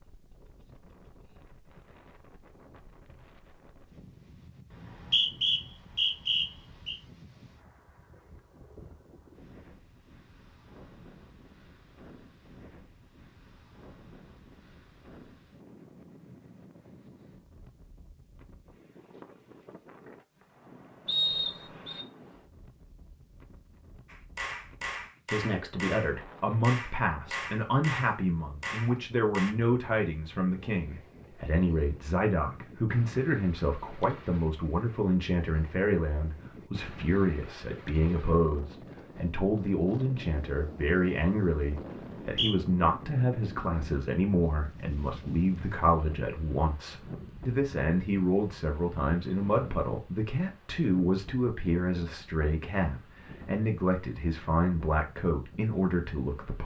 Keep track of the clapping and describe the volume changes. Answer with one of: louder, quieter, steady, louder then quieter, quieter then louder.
steady.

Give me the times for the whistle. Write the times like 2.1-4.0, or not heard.
4.7-7.0, 21.1-22.1, 42.0-42.5.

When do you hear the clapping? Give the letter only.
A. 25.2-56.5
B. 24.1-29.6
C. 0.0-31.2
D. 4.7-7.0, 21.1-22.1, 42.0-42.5
B.